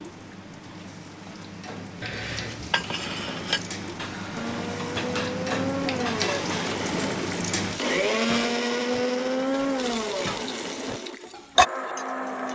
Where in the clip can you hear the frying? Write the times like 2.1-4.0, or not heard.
0.0-8.0, 9.8-12.4.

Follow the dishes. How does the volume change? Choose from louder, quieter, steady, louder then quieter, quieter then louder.
quieter then louder.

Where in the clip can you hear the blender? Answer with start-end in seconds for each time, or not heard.
4.3-12.4.